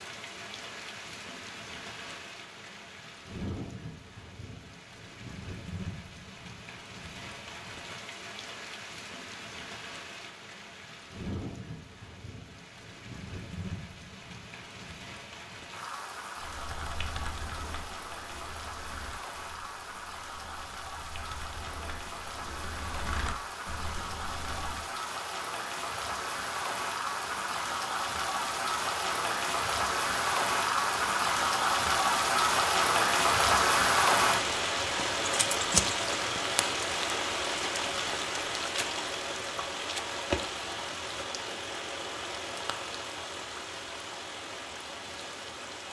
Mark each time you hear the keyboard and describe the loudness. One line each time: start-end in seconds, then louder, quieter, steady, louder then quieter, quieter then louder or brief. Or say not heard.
16.4-24.9 quieter then louder.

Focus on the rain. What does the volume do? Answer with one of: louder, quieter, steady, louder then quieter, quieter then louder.
louder then quieter.